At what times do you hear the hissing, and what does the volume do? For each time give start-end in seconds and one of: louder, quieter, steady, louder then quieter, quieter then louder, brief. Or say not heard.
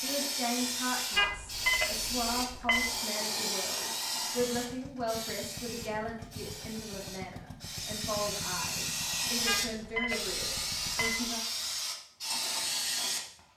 0.0-13.4 quieter then louder.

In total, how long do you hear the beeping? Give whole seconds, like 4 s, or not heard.
4 s.